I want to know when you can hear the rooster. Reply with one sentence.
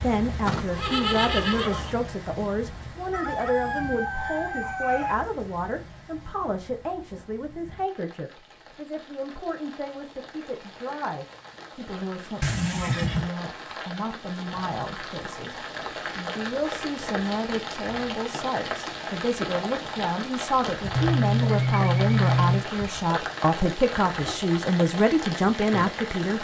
You can hear the rooster from 3.1 to 5.2 s.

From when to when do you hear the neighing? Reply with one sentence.
You can hear the neighing from 0.5 to 1.9 s, from 12.4 to 13.3 s and from 20.9 to 22.6 s.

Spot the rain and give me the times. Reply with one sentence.
The rain can be heard from 0.0 to 26.3 s.